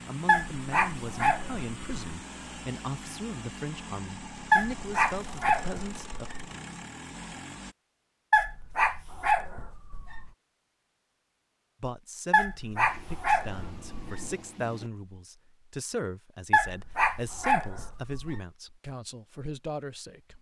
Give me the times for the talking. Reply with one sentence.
You can hear the talking from 0.1 to 6.2 s and from 11.8 to 20.3 s.